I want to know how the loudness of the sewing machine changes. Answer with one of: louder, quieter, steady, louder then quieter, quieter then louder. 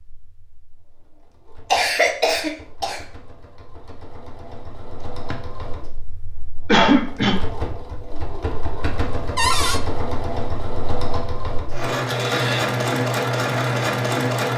louder.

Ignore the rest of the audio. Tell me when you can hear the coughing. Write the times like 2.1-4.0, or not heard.
1.7-3.0, 6.7-7.3, 12.1-12.7.